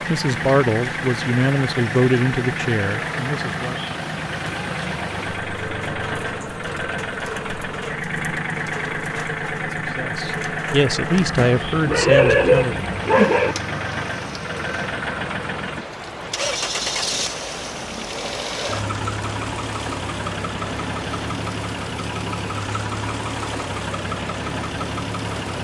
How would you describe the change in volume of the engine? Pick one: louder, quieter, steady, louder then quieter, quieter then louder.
steady.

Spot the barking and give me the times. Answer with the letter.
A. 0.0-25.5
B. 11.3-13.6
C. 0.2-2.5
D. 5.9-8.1
B.